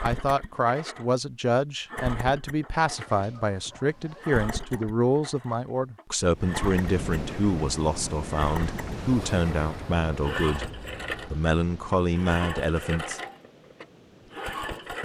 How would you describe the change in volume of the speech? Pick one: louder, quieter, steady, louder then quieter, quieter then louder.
steady.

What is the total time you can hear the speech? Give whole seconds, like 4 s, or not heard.
13 s.